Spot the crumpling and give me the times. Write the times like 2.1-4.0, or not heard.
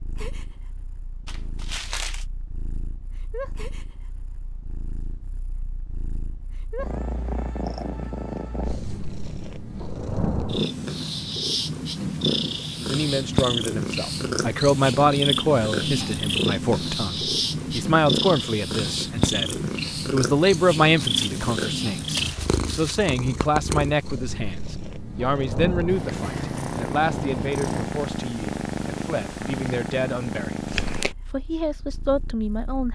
1.2-2.2, 20.9-23.0.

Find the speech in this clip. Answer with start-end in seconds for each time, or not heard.
12.8-30.6, 31.3-32.8.